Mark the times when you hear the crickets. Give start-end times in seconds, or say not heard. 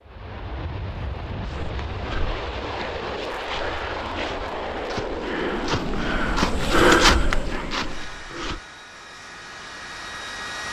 not heard.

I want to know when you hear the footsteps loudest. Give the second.
7 s.